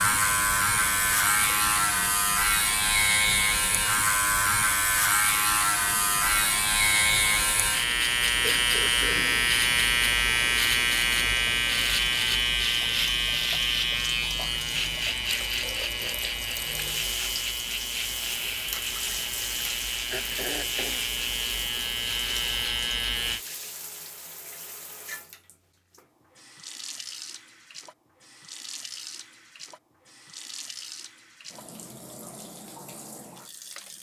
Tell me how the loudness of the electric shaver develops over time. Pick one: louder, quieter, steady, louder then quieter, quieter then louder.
quieter.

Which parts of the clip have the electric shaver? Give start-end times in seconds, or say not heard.
0.0-23.4.